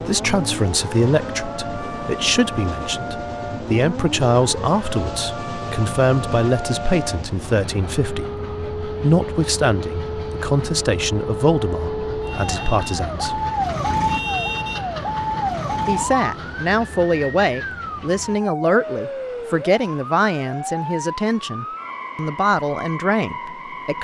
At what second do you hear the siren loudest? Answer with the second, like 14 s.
14 s.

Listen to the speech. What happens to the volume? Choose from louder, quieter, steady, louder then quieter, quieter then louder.
steady.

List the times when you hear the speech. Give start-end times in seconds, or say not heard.
0.0-13.4, 15.8-24.0.